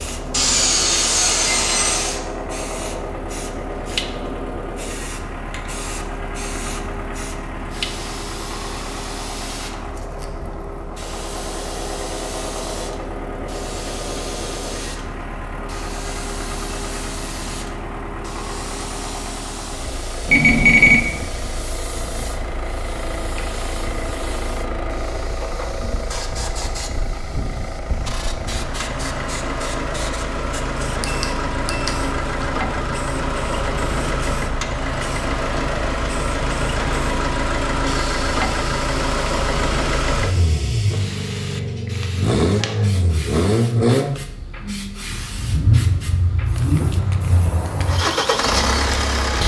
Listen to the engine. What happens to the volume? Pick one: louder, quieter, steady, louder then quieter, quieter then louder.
louder.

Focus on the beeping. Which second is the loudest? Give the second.
21 s.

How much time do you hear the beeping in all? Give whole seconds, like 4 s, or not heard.
2 s.